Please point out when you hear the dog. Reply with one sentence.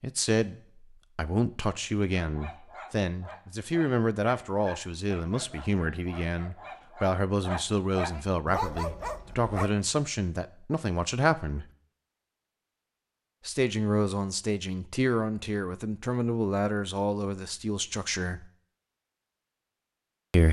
You can hear the dog from 2.2 to 9.7 s.